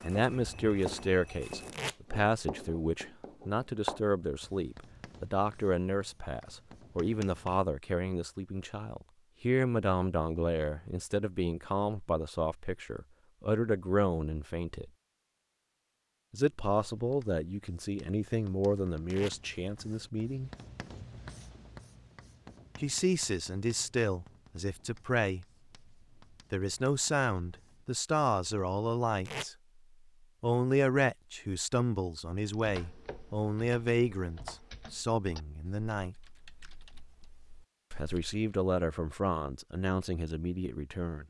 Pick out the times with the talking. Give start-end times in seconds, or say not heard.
0.0-14.9, 16.3-20.5, 22.8-25.4, 26.5-29.6, 30.4-36.1, 37.9-41.2.